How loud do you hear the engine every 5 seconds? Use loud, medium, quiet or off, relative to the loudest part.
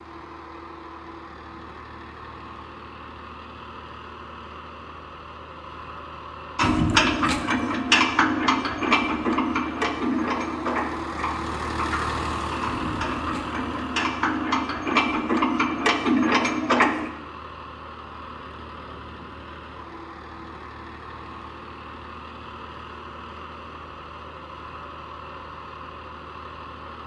medium, medium, loud, medium, medium, medium.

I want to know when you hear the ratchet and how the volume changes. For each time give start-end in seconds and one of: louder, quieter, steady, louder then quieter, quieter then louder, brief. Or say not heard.
6.5-17.1 quieter then louder.